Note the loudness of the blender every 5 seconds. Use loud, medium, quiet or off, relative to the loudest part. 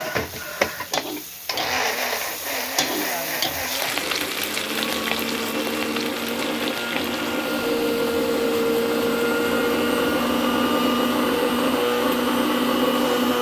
medium, loud, loud.